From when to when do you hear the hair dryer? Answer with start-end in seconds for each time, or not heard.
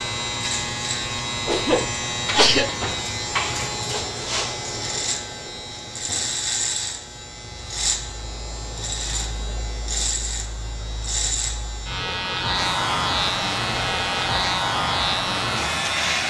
12.5-16.2.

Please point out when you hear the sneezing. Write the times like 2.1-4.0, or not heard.
1.4-2.8.